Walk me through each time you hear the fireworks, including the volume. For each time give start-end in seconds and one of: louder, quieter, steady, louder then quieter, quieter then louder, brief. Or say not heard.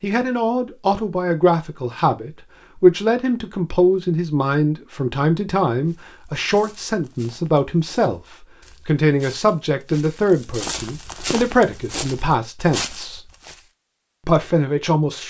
not heard.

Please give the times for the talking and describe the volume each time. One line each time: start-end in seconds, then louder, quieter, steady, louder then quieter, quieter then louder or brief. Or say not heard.
0.0-13.2 steady
14.2-15.2 brief.